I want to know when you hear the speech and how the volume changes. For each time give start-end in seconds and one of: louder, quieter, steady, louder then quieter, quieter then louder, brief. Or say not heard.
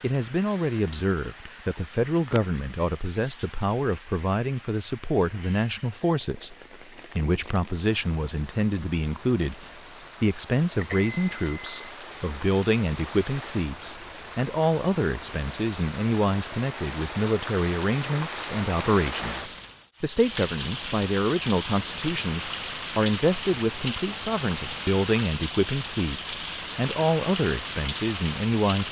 0.0-6.5 steady
7.2-28.8 steady.